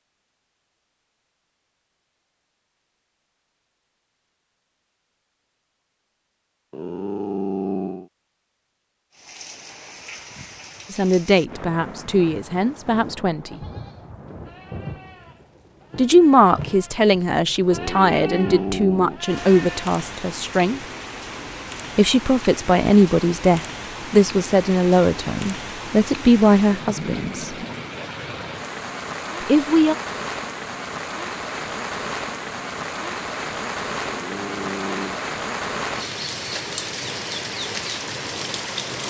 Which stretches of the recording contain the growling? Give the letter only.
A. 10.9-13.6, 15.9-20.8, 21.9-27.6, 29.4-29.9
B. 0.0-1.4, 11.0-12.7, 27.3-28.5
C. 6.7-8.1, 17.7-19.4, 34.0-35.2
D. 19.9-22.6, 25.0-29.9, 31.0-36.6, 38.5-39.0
C.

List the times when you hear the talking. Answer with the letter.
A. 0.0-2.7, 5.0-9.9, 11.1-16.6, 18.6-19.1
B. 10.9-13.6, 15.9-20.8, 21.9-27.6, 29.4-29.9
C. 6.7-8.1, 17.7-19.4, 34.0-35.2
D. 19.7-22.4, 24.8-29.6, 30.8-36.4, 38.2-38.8
B.